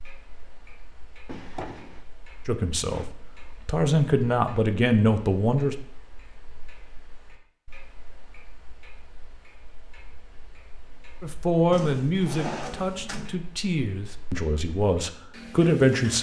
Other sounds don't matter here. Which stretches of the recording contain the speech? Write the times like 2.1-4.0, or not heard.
2.5-5.8, 11.2-16.1.